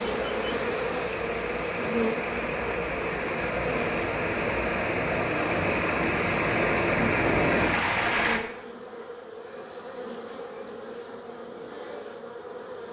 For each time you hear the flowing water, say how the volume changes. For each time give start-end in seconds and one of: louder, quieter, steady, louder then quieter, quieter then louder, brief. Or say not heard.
0.0-8.4 louder.